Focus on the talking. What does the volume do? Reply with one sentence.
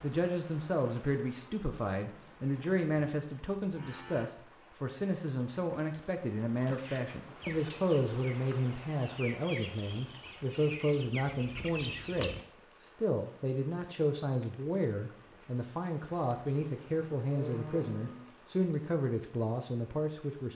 The volume of the talking stays about the same.